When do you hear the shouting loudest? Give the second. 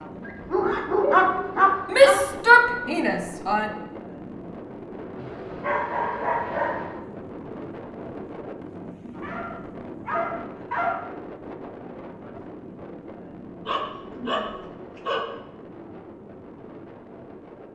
2 s.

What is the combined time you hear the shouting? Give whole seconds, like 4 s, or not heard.
2 s.